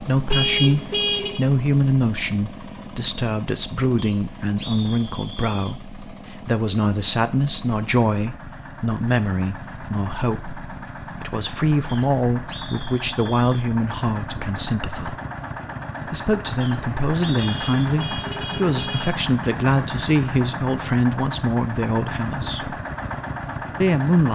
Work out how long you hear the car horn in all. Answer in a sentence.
You can hear the car horn for 3 seconds altogether.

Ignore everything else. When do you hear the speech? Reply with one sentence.
The speech can be heard from 0.0 to 15.2 s, from 16.1 to 22.8 s and from 23.8 to 24.3 s.